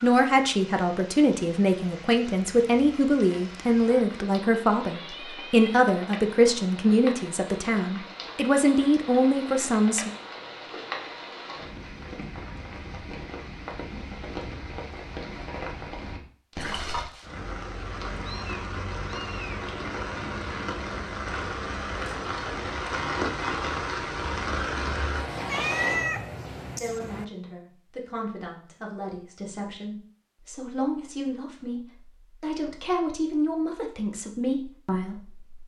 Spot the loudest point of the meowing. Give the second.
26 s.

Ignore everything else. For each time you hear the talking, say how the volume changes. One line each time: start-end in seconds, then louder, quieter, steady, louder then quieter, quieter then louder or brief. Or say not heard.
0.0-10.1 steady
26.8-35.5 louder.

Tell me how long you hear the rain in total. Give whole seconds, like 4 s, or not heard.
26 s.